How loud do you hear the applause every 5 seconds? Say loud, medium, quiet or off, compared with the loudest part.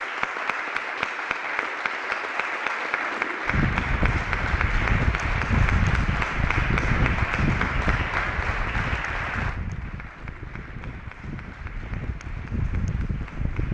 loud, loud, quiet.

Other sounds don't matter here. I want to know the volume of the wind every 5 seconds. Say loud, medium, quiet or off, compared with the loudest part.
loud, loud, medium.